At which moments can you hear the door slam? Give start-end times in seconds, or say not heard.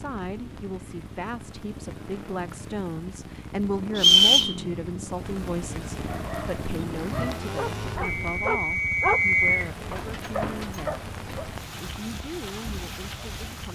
10.4-10.8.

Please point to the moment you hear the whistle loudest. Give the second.
4 s.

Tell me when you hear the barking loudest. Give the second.
9 s.